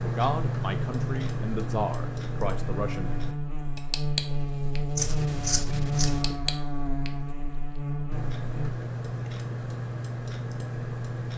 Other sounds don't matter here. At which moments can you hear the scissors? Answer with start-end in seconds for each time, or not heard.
5.0-6.3.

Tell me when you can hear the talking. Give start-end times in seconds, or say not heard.
0.0-3.2.